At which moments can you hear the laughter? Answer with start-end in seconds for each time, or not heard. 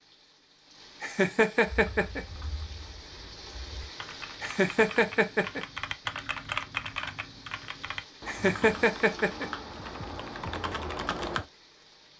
1.0-2.2, 4.4-5.7, 8.2-9.5.